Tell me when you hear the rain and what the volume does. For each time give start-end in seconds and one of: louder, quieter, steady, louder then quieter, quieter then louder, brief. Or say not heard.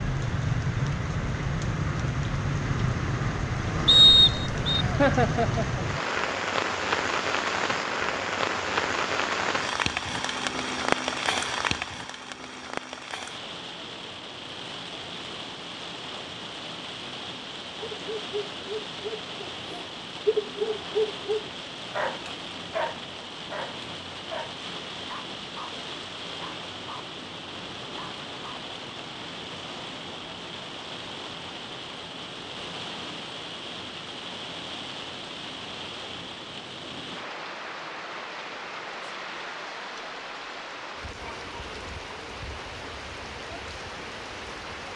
0.0-44.9 quieter.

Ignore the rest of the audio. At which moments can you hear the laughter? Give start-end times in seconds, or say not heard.
4.7-5.8.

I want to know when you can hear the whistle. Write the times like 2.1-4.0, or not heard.
3.9-4.8.